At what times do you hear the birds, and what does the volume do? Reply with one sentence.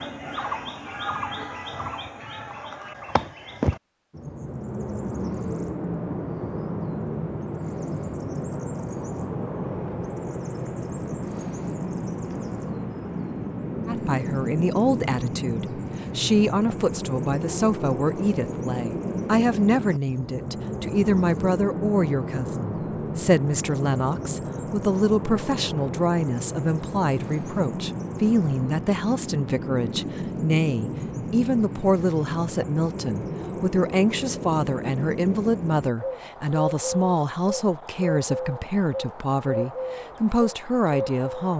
The birds can be heard from 0.0 to 41.5 s, at a steady volume.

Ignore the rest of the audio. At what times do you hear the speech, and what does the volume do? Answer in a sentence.
You can hear the speech from 13.8 to 41.5 s, at a steady volume.